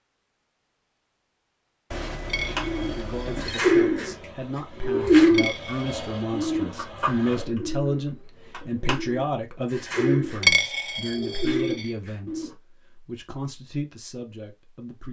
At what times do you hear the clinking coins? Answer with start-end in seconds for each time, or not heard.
2.2-3.4, 5.3-6.1, 10.4-11.9.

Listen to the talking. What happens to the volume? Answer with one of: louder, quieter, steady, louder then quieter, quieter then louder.
louder then quieter.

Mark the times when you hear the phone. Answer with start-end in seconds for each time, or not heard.
1.9-3.6.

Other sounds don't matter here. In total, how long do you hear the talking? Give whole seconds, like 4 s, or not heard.
12 s.